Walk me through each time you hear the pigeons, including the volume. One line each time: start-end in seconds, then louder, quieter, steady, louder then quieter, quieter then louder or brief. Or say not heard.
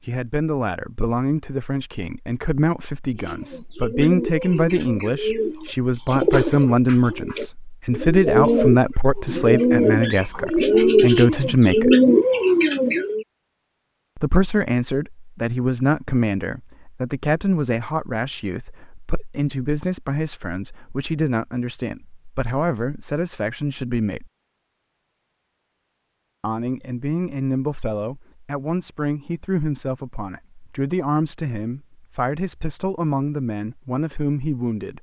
3.1-13.2 louder.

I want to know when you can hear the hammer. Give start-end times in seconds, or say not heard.
not heard.